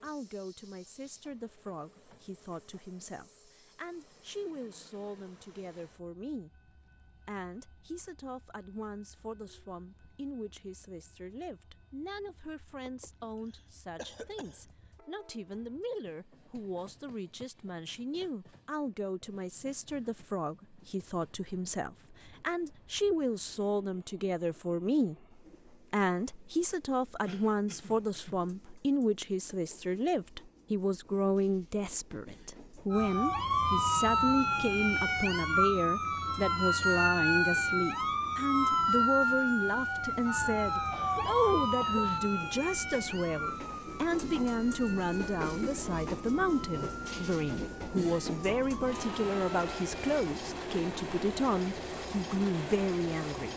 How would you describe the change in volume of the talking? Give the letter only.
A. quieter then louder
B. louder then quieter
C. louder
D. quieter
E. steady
C.